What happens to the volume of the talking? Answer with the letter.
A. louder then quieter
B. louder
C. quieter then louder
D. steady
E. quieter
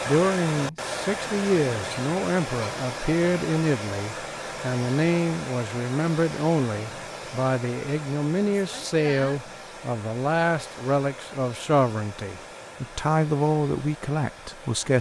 D.